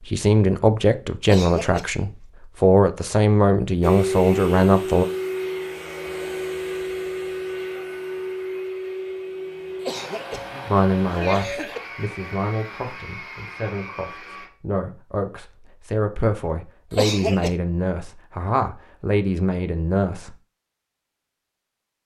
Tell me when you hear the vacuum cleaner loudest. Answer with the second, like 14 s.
4 s.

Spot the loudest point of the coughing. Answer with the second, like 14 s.
17 s.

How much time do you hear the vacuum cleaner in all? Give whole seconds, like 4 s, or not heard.
11 s.